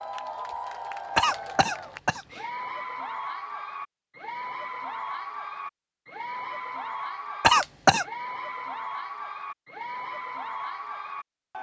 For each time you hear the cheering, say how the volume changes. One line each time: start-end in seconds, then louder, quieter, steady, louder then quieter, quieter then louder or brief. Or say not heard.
0.0-11.5 steady.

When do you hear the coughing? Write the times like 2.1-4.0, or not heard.
1.1-2.4, 7.4-8.1.